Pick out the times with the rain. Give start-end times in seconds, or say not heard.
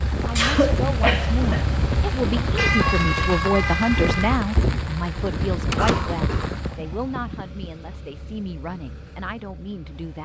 0.0-6.8.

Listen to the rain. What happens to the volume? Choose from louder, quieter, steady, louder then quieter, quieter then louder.
steady.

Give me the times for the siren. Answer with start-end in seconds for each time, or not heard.
2.5-4.4.